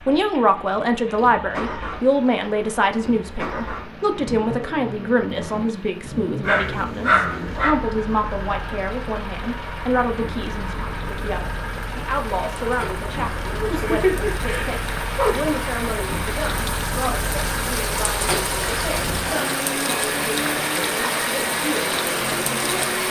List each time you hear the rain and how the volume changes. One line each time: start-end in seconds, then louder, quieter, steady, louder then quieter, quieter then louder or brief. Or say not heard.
0.0-23.0 louder.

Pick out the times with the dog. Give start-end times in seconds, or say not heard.
6.4-7.8, 13.7-15.6.